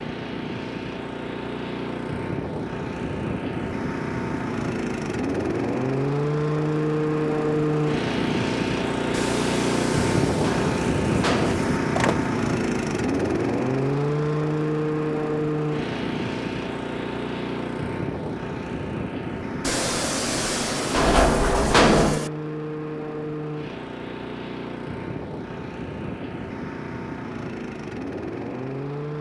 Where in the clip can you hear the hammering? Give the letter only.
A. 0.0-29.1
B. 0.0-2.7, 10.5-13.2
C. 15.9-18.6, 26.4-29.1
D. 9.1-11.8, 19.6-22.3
D.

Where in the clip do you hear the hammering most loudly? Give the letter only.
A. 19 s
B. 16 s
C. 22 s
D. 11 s
C.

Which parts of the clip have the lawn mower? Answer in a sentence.
The lawn mower can be heard from 0.0 to 29.1 s.